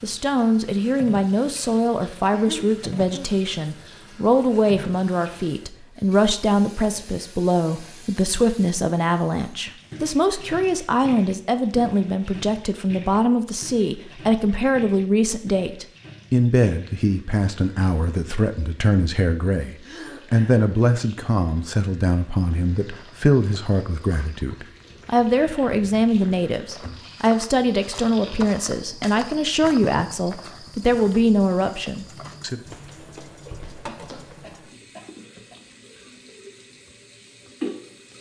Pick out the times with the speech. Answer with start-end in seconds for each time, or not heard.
0.0-32.6.